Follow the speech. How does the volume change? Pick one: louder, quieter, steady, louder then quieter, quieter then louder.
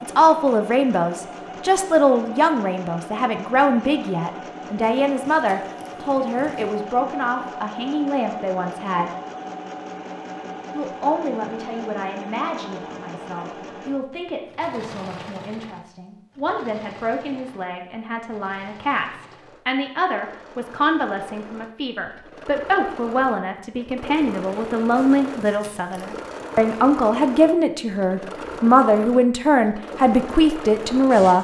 quieter then louder.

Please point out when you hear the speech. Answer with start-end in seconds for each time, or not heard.
0.0-9.1, 10.7-31.4.